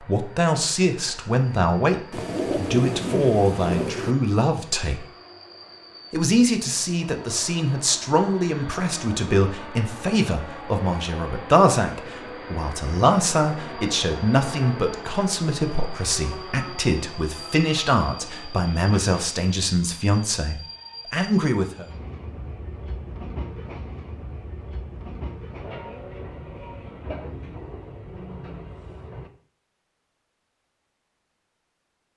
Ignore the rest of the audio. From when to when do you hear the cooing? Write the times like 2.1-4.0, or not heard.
2.1-4.2.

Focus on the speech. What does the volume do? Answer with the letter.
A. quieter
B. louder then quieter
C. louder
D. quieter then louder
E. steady
E.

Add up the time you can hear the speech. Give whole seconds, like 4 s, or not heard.
21 s.